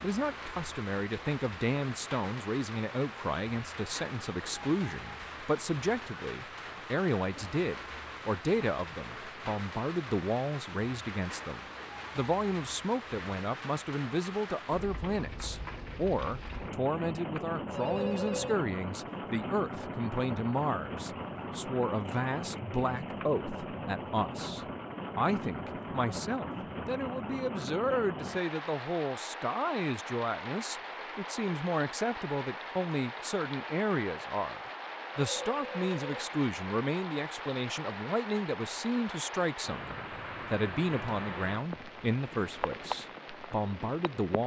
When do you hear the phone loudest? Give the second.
18 s.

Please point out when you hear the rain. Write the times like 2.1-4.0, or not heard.
0.0-44.4.